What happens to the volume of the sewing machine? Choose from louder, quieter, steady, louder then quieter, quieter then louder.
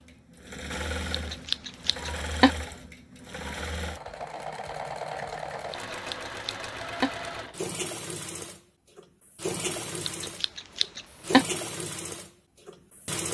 steady.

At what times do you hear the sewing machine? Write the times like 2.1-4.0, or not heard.
0.0-13.2.